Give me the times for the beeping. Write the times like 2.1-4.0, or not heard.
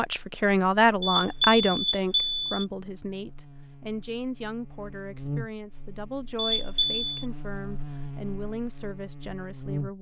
1.0-2.6, 6.3-7.2.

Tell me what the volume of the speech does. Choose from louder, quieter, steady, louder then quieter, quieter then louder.
quieter.